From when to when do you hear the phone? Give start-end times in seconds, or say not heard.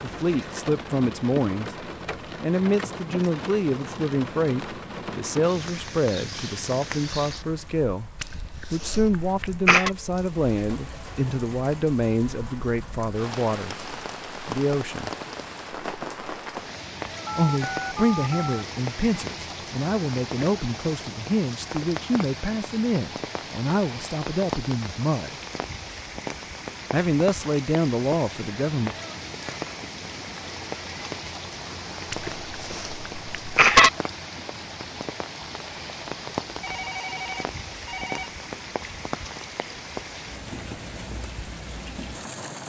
17.2-18.6, 36.6-38.3.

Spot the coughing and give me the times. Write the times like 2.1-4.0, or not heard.
8.2-9.9, 32.1-33.9.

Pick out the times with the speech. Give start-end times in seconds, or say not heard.
0.0-13.8, 14.4-15.1, 17.4-25.3, 26.9-28.9.